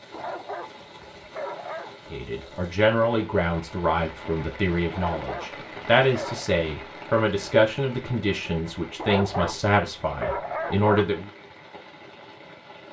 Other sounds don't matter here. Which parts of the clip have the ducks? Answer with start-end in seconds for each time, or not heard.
not heard.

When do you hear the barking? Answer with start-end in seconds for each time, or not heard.
0.1-1.9, 4.9-6.5, 8.9-11.2.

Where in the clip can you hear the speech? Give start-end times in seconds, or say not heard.
2.1-11.3.